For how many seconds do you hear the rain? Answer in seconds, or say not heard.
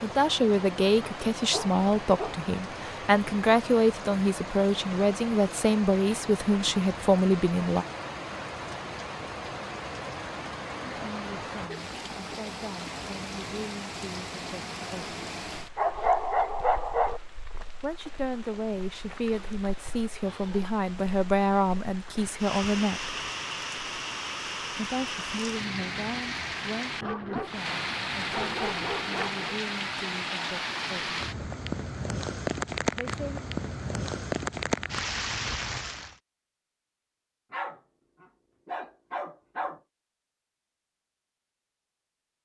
36 s.